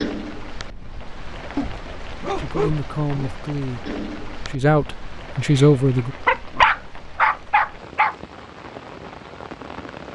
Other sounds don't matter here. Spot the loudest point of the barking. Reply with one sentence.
The volume of the barking peaks at 7 seconds.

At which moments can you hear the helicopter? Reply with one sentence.
The helicopter can't be heard in this clip.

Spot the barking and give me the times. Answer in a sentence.
The barking can be heard from 1.6 to 3.3 s and from 5.4 to 8.2 s.